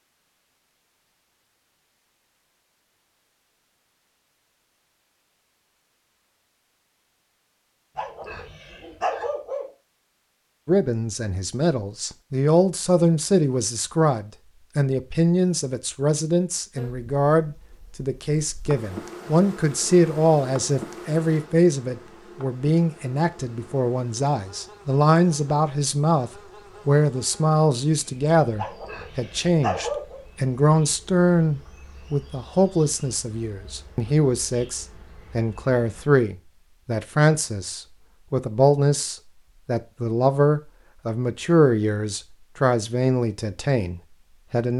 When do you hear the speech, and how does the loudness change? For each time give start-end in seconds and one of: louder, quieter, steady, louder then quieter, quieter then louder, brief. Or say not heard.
10.7-44.7 steady.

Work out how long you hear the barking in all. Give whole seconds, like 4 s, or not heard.
3 s.